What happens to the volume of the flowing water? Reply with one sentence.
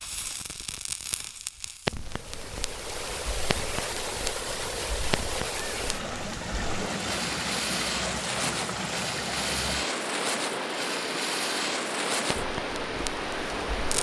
The loudness of the flowing water stays about the same.